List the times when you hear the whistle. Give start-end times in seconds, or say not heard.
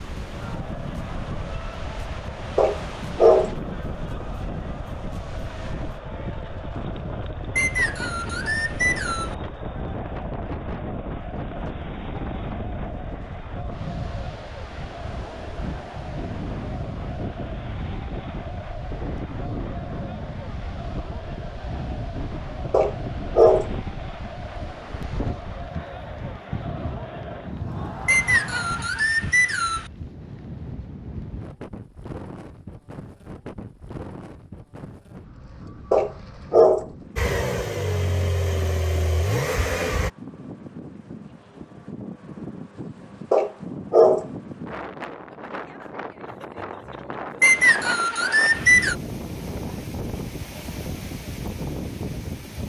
7.5-9.3, 28.1-29.9, 47.4-49.0.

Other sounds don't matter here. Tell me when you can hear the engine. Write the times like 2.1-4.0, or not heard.
37.1-40.1.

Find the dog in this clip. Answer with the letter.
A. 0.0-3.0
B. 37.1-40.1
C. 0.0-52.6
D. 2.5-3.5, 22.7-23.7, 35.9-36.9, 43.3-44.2
D.